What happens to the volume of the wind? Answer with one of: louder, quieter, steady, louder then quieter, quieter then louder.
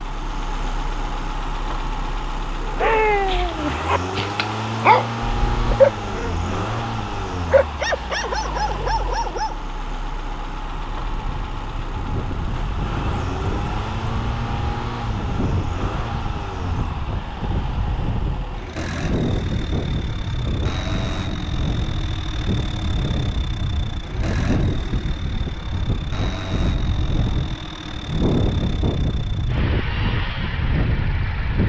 louder.